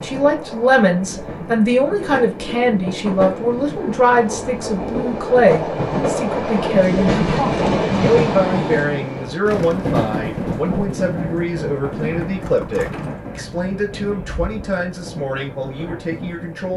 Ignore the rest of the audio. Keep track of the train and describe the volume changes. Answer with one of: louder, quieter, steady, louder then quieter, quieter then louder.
louder then quieter.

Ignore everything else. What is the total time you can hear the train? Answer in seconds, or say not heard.
17 s.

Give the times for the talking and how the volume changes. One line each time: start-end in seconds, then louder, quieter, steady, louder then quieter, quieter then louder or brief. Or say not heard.
0.0-16.7 quieter.